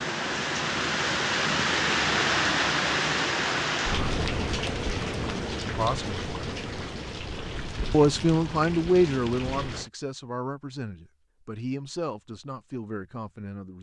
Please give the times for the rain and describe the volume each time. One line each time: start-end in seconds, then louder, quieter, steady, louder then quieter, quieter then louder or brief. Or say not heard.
0.0-9.9 quieter.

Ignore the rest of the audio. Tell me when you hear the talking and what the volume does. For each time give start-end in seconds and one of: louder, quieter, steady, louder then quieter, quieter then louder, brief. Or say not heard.
5.7-6.2 brief
7.9-13.7 quieter.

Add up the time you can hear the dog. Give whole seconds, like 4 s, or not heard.
not heard.